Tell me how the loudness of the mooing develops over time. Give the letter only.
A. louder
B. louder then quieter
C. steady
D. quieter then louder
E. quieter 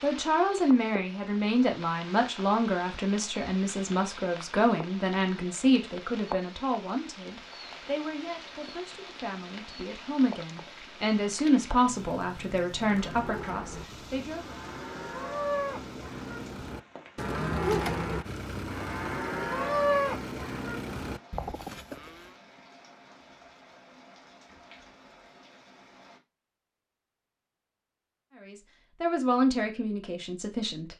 B.